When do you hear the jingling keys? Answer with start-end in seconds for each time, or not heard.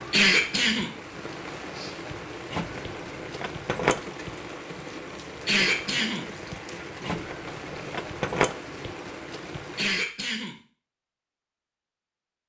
2.5-4.0, 7.0-8.6.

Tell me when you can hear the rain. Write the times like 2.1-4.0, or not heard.
0.0-10.1.